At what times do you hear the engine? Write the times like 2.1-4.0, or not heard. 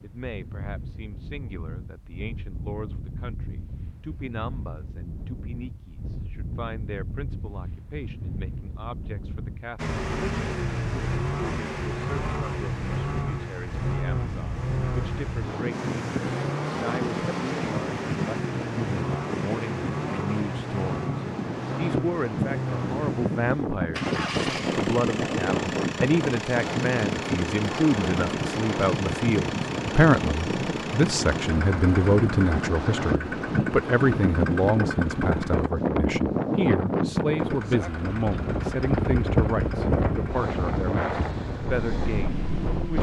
9.8-35.7, 37.4-42.9.